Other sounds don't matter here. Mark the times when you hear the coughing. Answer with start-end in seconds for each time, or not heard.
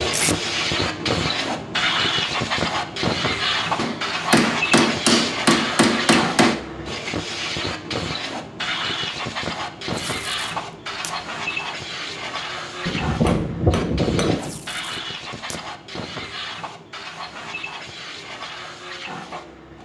not heard.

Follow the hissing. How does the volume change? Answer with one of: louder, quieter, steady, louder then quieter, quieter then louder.
quieter.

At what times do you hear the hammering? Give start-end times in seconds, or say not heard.
3.8-6.5, 12.8-14.6.